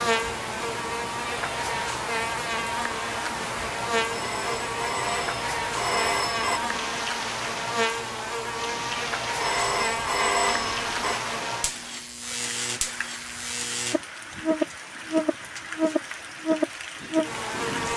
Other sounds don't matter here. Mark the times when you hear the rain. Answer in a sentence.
The rain can be heard from 0.0 to 17.9 s.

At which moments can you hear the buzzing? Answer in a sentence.
The buzzing can be heard from 0.0 to 17.9 s.